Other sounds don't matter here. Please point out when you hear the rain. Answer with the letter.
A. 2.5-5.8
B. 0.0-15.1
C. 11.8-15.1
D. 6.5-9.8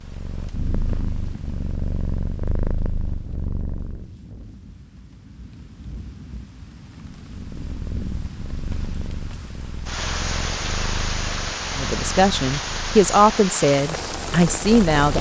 B.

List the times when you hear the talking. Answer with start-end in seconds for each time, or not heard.
11.8-15.1.